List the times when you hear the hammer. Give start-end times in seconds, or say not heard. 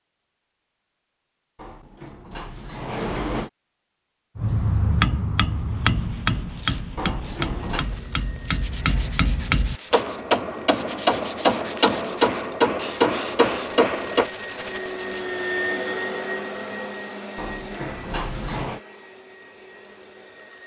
4.3-14.3.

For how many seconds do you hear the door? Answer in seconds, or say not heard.
4 s.